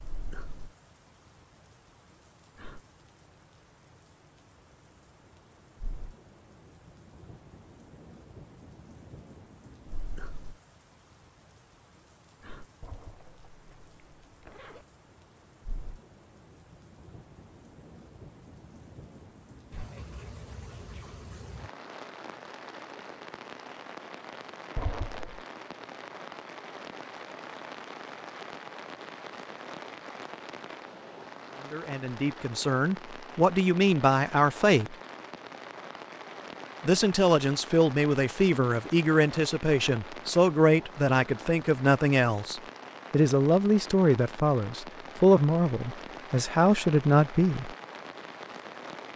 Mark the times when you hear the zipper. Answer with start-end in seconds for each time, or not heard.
12.8-14.8, 24.8-25.4.